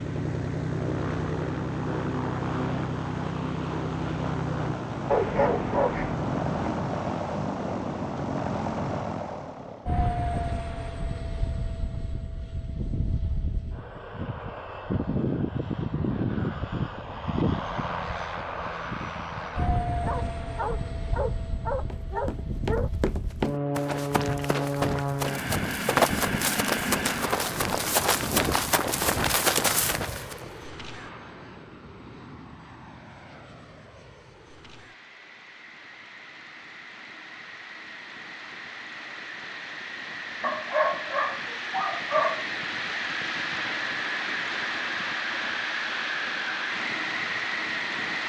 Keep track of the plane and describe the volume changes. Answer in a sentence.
The loudness of the plane goes down, then up.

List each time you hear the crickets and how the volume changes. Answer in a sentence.
The crickets can't be heard in this clip.